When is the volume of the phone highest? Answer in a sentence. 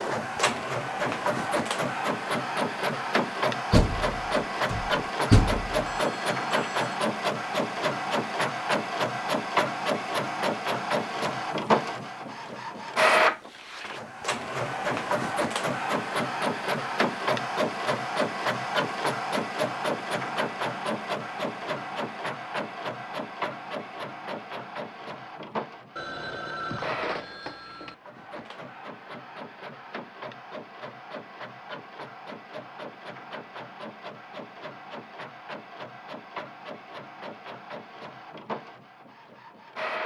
The volume of the phone peaks at 27 seconds.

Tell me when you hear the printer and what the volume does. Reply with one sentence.
The printer can be heard from 0.0 to 40.0 s, getting quieter.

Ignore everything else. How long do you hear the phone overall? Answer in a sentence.
The phone can be heard for 3 seconds in total.